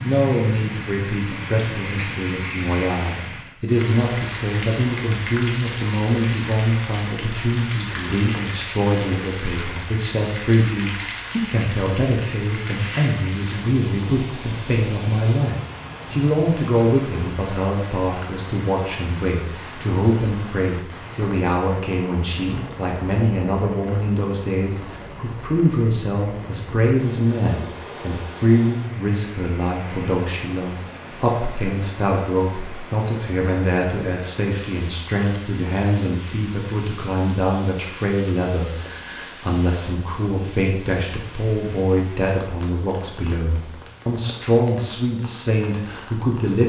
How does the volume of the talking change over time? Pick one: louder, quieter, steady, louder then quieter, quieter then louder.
steady.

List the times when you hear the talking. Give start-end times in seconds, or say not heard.
0.0-46.6.